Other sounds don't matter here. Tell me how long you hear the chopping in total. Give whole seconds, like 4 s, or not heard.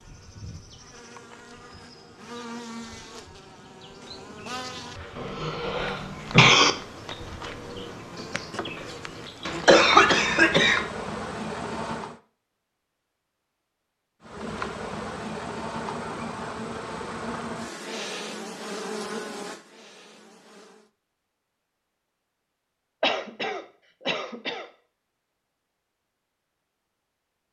not heard.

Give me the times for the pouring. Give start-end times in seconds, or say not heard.
not heard.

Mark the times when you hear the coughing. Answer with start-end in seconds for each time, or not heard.
5.2-6.8, 9.4-10.8, 23.0-24.6.